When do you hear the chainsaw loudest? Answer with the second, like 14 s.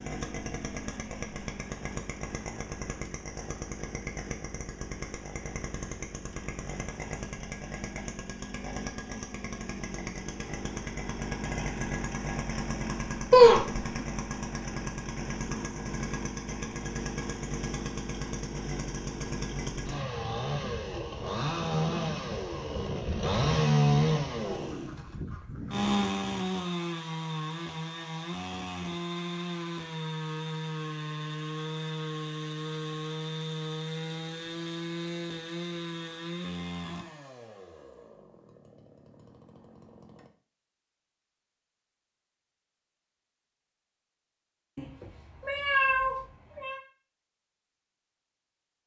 24 s.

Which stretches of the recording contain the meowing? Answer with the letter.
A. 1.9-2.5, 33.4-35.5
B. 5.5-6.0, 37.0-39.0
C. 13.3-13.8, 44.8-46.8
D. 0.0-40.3
C.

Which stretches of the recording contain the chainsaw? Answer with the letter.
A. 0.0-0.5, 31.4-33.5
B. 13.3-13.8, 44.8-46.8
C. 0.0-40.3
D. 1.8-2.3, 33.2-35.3
C.